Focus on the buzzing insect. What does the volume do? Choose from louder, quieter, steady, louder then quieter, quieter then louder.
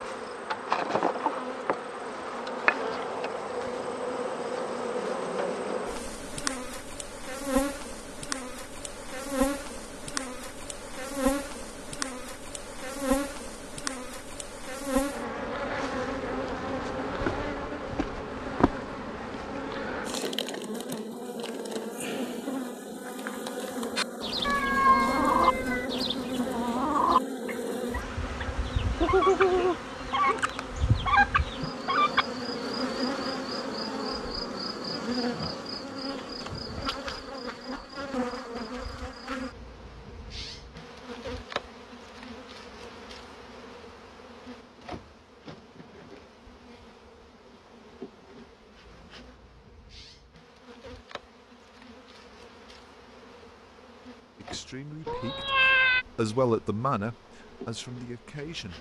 quieter.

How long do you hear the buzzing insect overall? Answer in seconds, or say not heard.
59 s.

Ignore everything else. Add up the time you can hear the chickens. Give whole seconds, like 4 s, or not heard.
8 s.